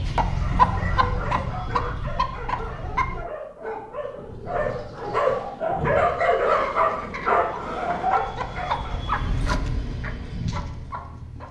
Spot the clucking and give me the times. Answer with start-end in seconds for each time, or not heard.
0.0-3.2, 6.2-11.4.